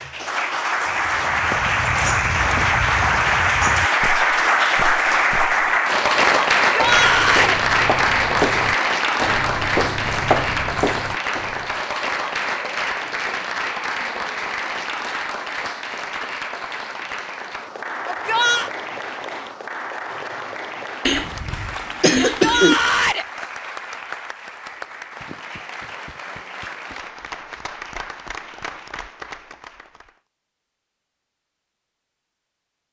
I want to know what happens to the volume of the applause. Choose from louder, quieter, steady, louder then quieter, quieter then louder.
quieter.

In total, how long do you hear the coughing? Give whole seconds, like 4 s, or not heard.
2 s.